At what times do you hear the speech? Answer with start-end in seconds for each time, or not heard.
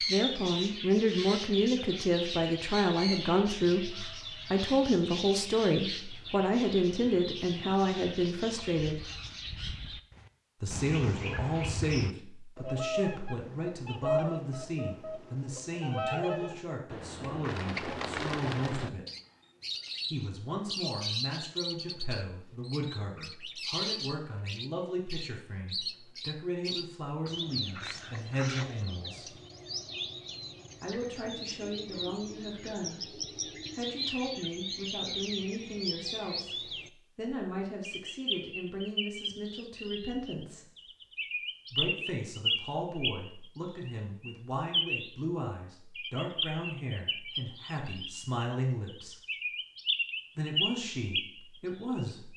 0.1-9.0, 10.6-19.1, 20.1-29.4, 30.8-40.6, 41.7-49.2, 50.4-52.3.